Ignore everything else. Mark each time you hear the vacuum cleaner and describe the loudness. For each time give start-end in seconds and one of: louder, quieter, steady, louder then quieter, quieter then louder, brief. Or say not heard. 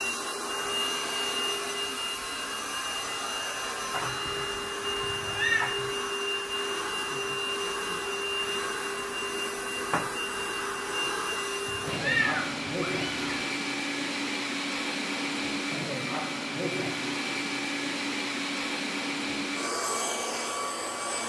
0.0-21.2 steady.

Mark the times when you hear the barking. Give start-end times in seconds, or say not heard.
not heard.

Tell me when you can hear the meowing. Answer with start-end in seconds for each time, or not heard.
5.0-5.8, 11.7-13.4.